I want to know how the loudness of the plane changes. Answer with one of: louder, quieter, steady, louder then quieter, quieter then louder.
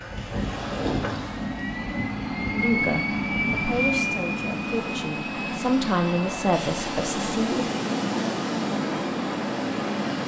louder then quieter.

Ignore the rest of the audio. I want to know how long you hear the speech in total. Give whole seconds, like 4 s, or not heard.
5 s.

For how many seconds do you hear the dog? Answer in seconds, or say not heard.
not heard.